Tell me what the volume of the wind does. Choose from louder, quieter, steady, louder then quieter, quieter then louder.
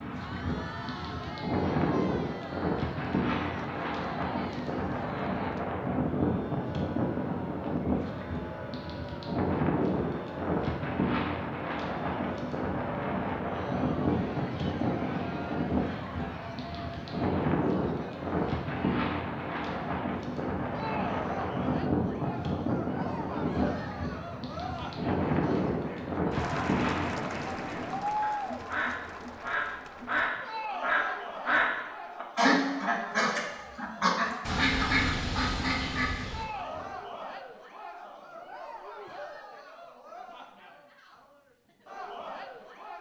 steady.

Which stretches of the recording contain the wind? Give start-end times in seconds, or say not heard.
0.0-27.4.